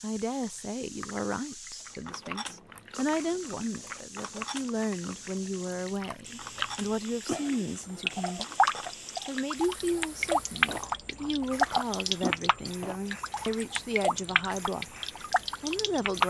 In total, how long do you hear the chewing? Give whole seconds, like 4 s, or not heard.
11 s.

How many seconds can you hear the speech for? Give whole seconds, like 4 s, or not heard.
15 s.